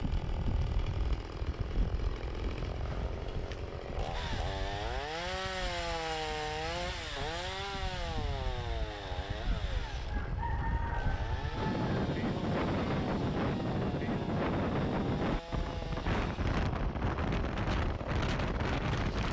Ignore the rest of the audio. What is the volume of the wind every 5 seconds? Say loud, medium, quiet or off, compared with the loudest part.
medium, quiet, loud, loud.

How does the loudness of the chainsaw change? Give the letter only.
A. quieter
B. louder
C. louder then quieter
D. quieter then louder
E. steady
C.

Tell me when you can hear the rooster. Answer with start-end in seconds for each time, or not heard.
10.1-11.9.